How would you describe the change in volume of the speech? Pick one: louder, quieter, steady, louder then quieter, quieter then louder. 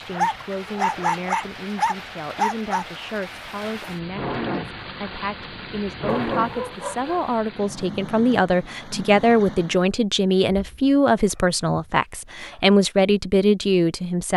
louder.